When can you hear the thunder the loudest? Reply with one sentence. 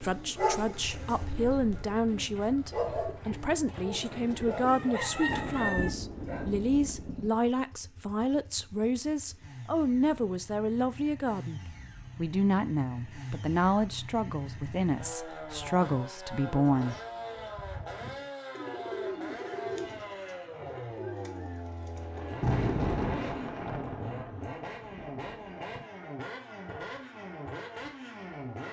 The loudest moment of the thunder is at 23 seconds.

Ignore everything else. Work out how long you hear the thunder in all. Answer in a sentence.
The thunder can be heard for 6 seconds in total.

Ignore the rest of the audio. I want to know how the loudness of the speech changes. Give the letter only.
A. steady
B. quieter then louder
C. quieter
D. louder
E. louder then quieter
A.